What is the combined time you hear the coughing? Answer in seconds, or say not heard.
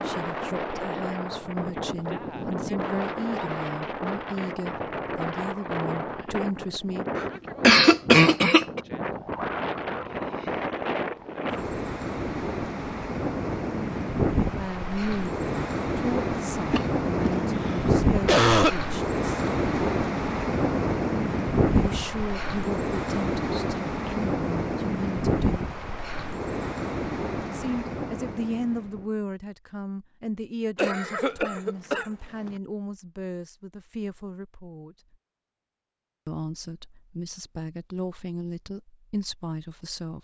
5 s.